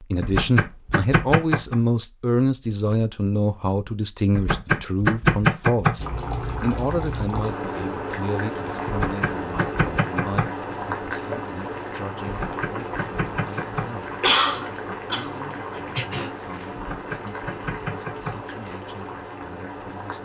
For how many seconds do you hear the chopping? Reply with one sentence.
The chopping can be heard for 8 seconds in total.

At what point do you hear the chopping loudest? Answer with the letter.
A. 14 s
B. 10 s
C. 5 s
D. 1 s
C.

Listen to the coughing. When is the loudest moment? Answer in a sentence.
The loudest moment of the coughing is at 14 seconds.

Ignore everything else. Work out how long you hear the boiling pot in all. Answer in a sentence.
You can hear the boiling pot for 14 seconds altogether.